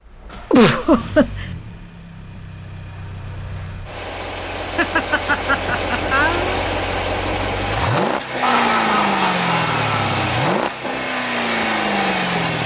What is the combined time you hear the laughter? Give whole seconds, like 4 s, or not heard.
5 s.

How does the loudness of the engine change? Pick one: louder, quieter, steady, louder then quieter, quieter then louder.
louder.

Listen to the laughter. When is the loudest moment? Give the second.
1 s.